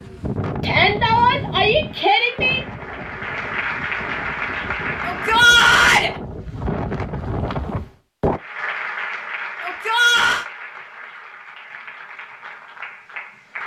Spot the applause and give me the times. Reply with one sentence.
You can hear the applause from 1.8 to 5.5 s and from 8.3 to 13.6 s.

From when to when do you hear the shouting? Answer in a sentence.
You can hear the shouting from 0.6 to 2.6 s, from 5.0 to 6.1 s and from 9.6 to 10.4 s.